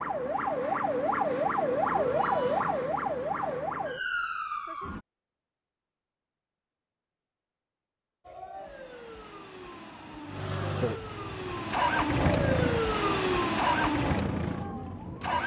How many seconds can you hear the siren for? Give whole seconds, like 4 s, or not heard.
12 s.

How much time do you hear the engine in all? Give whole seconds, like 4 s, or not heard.
5 s.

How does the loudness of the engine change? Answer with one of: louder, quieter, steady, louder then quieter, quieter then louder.
louder then quieter.